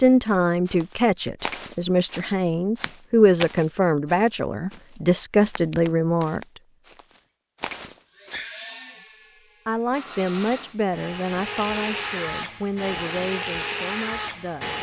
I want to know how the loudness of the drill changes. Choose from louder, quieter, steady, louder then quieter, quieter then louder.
louder.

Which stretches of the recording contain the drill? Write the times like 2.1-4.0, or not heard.
8.2-14.7.